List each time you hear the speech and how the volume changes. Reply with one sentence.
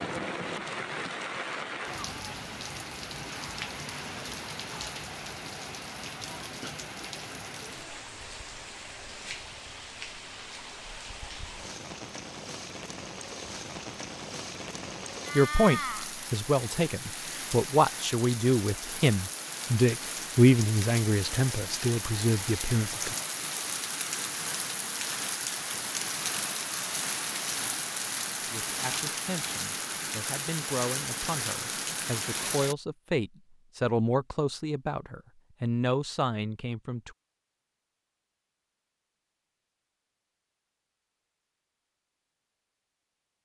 The speech can be heard from 15.3 to 23.1 s, getting louder then quieter; and from 28.4 to 37.1 s, getting louder.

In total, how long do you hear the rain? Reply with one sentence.
The rain can be heard for 33 seconds in total.